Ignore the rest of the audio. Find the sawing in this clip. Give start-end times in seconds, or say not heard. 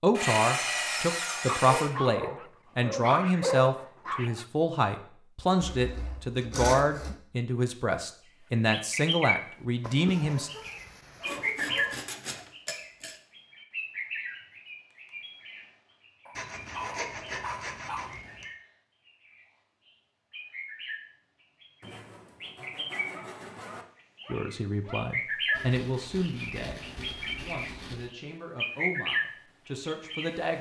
0.1-1.9, 5.6-7.2, 11.2-13.2, 16.4-18.5, 21.8-23.9, 25.5-28.1.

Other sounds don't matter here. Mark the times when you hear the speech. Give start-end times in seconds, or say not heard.
0.0-10.5, 24.2-30.5.